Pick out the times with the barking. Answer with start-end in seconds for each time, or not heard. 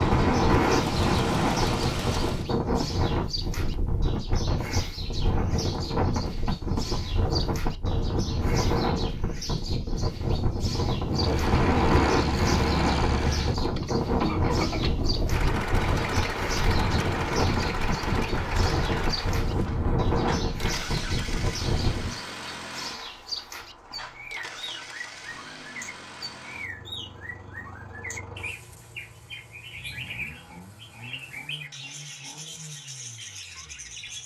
not heard.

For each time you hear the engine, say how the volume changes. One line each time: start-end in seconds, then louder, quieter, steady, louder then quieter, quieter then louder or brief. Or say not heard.
0.0-2.5 brief
11.1-34.2 quieter.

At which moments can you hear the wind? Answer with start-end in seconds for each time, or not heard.
0.0-22.2.